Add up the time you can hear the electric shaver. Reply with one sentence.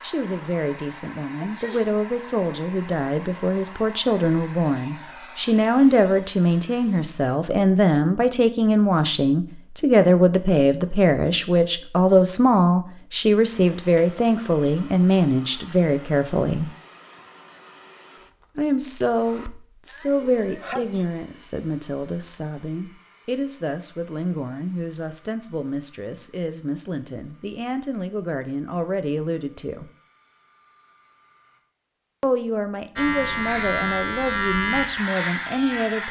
You can hear the electric shaver for 3 seconds altogether.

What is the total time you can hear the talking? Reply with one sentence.
You can hear the talking for 32 seconds altogether.